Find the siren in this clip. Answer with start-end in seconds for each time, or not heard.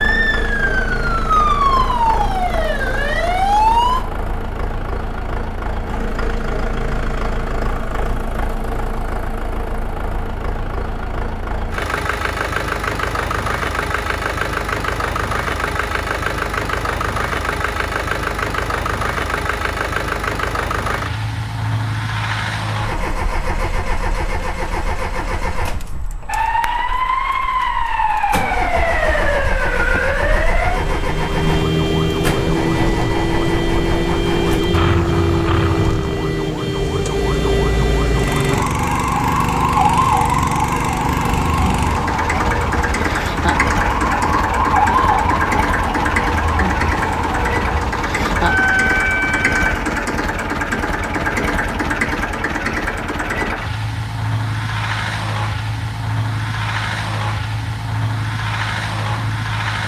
0.0-4.0, 26.2-49.8.